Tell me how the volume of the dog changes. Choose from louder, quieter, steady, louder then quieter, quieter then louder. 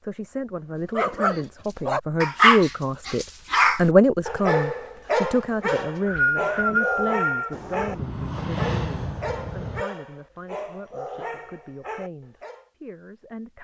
quieter.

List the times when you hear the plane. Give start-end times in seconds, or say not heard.
7.5-9.8.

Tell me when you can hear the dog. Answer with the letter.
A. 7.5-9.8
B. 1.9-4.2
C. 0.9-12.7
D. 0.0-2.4
C.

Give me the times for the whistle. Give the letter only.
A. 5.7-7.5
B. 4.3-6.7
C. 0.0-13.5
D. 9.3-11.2
A.